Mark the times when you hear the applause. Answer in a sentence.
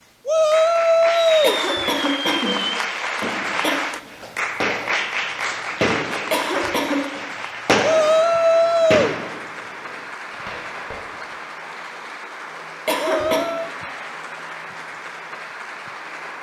You can hear the applause from 0.0 to 16.3 s.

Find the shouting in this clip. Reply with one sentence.
The shouting can be heard from 0.2 to 1.6 s, from 7.8 to 9.2 s and from 12.9 to 13.7 s.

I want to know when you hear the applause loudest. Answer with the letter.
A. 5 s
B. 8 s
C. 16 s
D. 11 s
A.